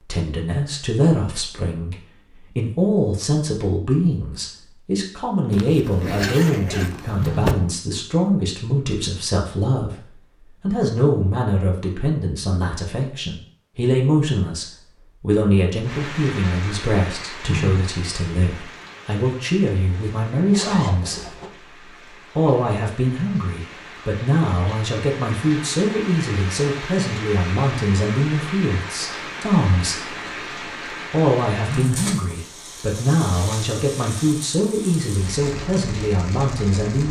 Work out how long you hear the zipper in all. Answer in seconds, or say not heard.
4 s.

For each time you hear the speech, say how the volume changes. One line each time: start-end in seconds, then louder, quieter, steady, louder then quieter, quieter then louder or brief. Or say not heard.
0.0-21.4 steady
22.4-30.1 steady
31.1-37.0 steady.